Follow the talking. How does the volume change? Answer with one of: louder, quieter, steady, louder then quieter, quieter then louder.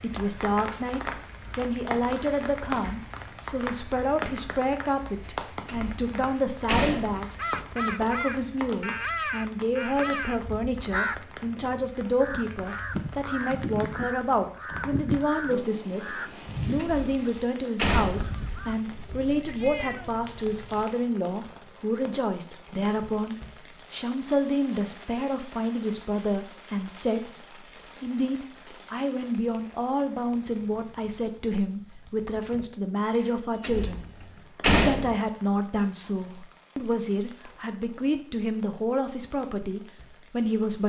steady.